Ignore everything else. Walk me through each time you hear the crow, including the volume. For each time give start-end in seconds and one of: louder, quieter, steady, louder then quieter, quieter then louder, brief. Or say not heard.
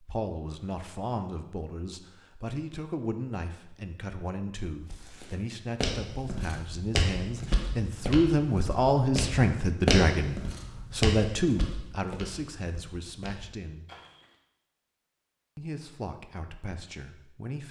not heard.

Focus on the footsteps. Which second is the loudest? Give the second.
10 s.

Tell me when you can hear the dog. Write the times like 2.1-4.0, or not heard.
not heard.